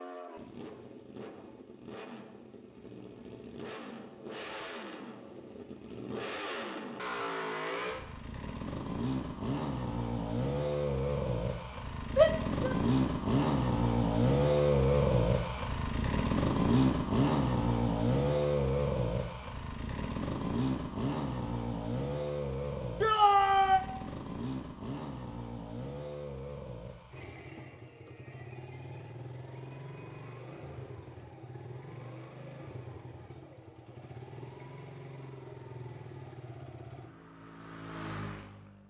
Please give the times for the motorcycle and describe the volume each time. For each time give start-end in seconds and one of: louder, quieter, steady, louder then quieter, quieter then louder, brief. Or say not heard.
0.0-38.8 louder then quieter.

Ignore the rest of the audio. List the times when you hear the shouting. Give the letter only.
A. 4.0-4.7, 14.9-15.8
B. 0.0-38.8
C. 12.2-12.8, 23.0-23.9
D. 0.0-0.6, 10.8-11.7
C.